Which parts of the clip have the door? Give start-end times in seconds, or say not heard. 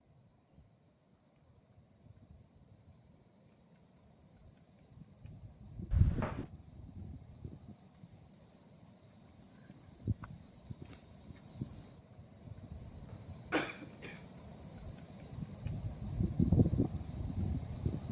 not heard.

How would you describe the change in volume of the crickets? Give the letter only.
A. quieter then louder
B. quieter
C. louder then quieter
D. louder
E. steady
D.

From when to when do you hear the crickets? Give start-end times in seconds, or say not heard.
0.0-18.0.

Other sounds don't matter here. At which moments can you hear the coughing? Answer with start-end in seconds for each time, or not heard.
5.9-6.5, 12.8-14.2.